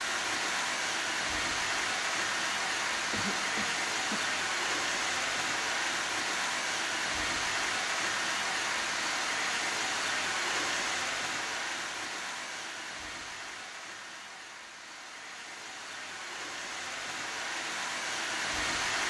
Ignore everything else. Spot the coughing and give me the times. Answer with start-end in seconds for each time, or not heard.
3.1-4.3.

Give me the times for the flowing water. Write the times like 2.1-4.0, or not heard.
0.0-19.0.